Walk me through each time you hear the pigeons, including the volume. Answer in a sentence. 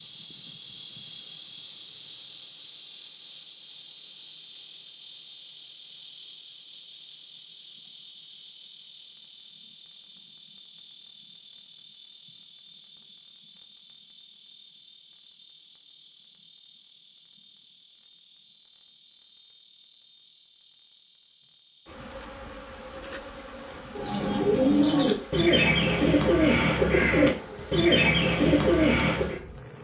The pigeons can be heard from 23.9 to 29.4 s, at a steady volume.